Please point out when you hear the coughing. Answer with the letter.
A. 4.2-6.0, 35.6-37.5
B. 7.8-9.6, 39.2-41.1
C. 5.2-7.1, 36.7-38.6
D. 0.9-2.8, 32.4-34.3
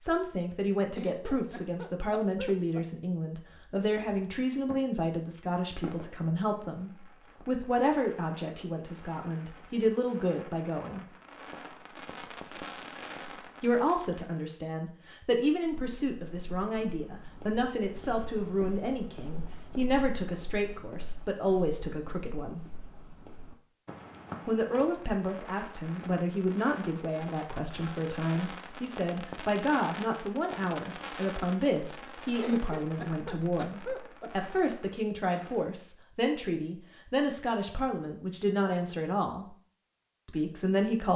D.